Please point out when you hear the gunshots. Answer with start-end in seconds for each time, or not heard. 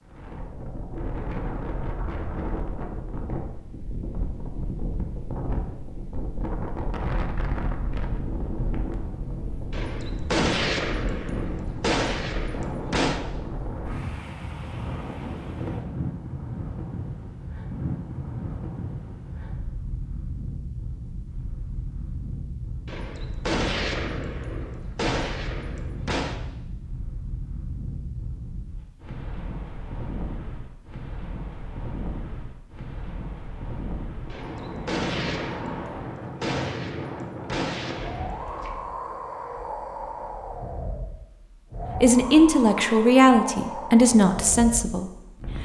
9.7-13.2, 22.9-26.4, 34.3-38.8.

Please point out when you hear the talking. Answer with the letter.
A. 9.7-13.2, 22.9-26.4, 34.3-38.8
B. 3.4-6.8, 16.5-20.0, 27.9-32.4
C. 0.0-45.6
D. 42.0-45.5
D.